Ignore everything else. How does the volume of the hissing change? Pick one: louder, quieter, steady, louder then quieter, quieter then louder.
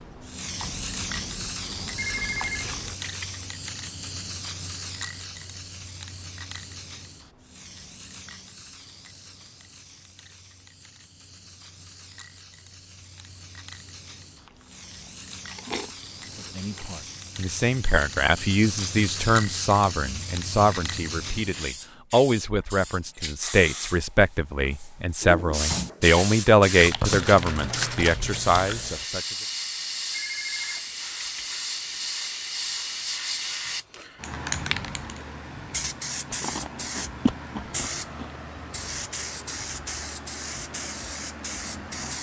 quieter then louder.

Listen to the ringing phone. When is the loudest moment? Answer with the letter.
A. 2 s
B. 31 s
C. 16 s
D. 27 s
A.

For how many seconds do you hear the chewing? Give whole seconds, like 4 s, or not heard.
9 s.